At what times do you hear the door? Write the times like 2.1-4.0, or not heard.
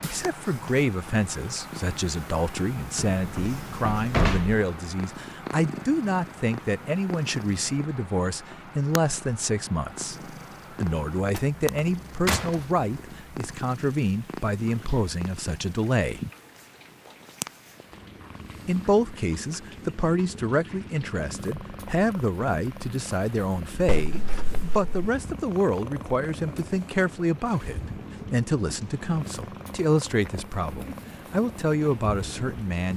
3.1-4.6, 11.3-12.6, 23.9-25.1.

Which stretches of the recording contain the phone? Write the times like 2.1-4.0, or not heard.
not heard.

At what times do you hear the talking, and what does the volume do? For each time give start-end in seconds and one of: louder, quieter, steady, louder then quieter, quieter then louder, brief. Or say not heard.
0.0-16.2 steady
18.6-32.9 steady.